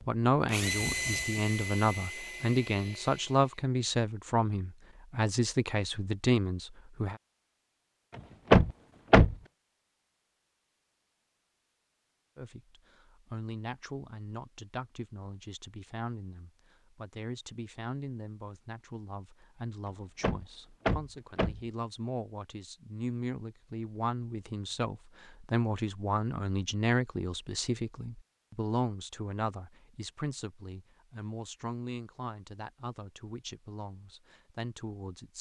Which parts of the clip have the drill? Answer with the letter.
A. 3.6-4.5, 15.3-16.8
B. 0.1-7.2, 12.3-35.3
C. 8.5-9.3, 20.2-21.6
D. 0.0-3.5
D.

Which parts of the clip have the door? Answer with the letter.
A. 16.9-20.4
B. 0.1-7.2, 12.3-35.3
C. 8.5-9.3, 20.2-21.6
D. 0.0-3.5
C.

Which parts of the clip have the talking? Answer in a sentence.
You can hear the talking from 0.1 to 7.2 s and from 12.3 to 35.3 s.